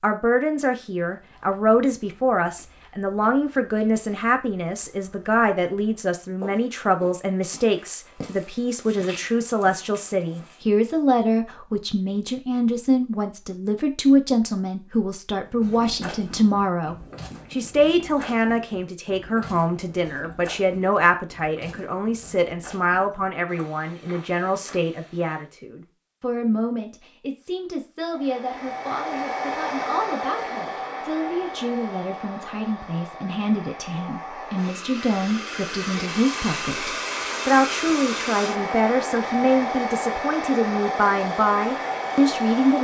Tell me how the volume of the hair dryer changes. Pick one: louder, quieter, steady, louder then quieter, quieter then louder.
quieter then louder.